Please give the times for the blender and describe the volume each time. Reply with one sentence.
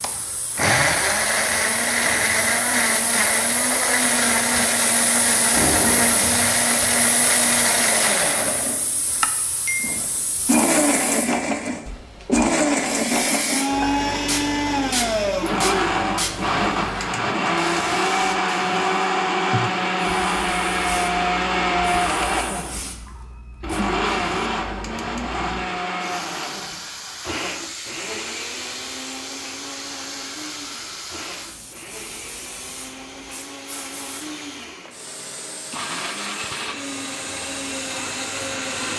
The blender can be heard from 0.0 to 38.9 s, getting quieter.